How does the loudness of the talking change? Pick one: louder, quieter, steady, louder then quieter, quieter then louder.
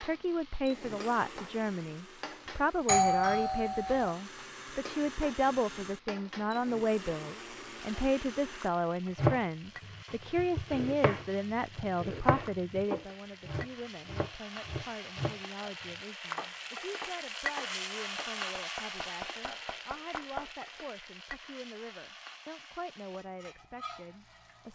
quieter.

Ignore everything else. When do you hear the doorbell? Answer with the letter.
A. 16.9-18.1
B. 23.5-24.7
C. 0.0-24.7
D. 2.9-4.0
D.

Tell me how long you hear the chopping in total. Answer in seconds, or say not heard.
11 s.